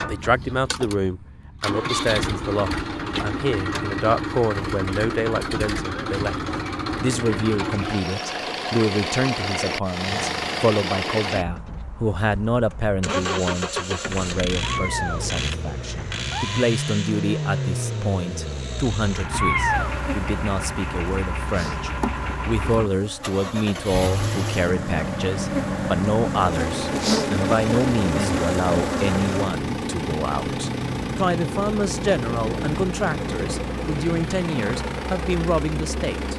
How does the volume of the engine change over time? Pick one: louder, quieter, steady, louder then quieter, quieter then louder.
steady.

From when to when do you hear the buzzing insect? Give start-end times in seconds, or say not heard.
19.6-29.5.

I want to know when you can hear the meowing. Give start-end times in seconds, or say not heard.
14.6-16.6, 19.3-19.9.